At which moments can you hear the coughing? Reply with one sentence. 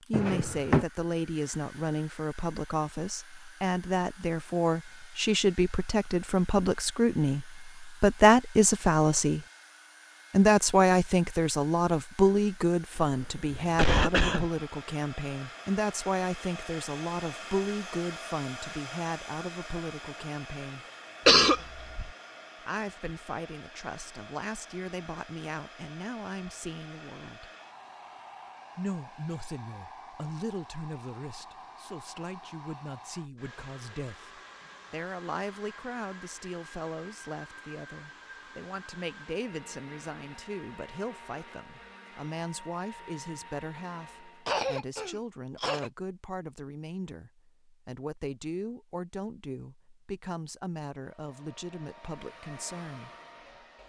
The coughing can be heard from 12.9 to 14.4 s, from 21.2 to 22.1 s and from 44.5 to 45.9 s.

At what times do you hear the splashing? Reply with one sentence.
The splashing can't be heard in this clip.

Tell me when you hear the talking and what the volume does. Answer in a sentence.
The talking can be heard from 0.0 to 9.4 s, getting louder; from 10.3 to 20.9 s, getting quieter; from 22.6 to 27.5 s, at a steady volume; and from 28.8 to 53.1 s, at a steady volume.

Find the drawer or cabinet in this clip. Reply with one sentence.
The drawer or cabinet can be heard from 0.1 to 0.8 s.